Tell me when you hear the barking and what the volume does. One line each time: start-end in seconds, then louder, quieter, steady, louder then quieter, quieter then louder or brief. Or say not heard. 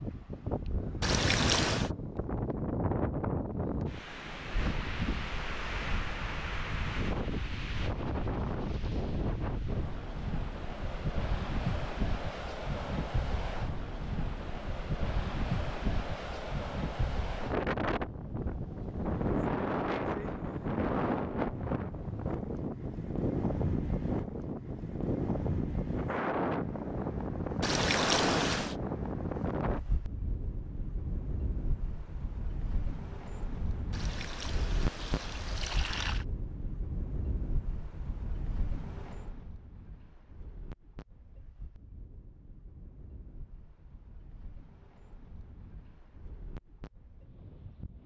not heard.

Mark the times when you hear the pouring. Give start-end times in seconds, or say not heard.
1.0-1.9, 27.6-28.8, 33.9-36.2.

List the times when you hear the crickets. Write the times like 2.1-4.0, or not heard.
not heard.